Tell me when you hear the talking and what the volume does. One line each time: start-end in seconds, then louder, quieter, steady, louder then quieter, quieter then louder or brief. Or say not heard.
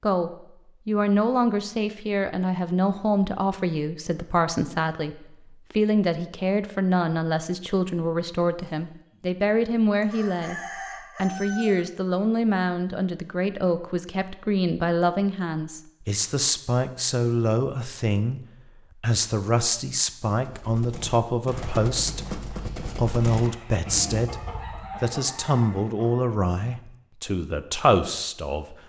0.0-28.8 steady.